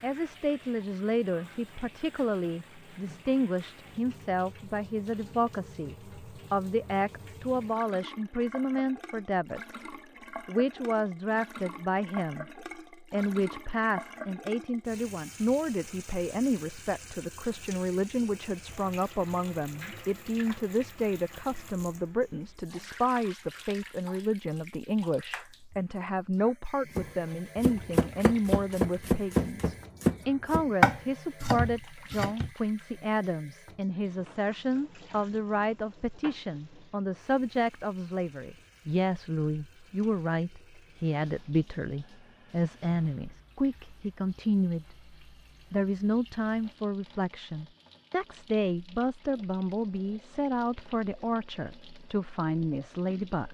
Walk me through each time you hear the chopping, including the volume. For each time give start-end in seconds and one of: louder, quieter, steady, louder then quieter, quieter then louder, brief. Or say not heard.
26.9-32.5 louder then quieter.